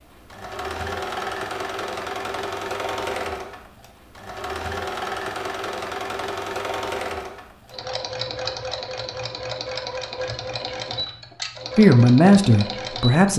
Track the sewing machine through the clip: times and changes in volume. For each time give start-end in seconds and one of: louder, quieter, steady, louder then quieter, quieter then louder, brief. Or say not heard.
0.0-13.3 steady.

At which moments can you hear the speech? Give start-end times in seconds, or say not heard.
11.8-13.3.